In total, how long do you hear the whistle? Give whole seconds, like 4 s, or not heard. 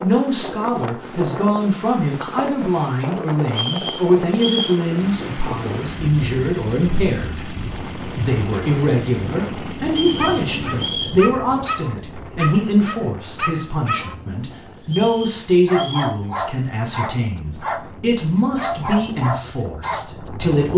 4 s.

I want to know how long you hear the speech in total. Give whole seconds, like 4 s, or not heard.
21 s.